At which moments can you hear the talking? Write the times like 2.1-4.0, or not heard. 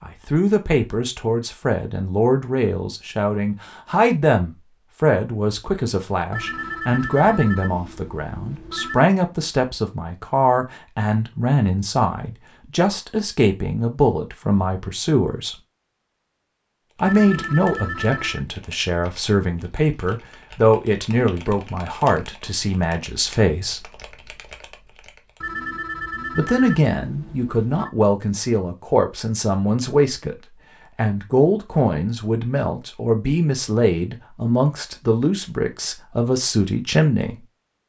0.0-15.6, 17.0-23.9, 26.4-37.5.